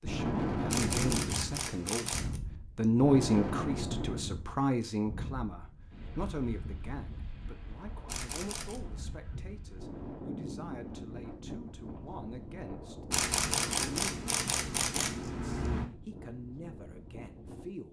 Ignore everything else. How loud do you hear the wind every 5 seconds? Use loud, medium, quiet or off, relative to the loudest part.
loud, quiet, medium, quiet.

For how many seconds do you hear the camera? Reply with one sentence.
You can hear the camera for 5 seconds altogether.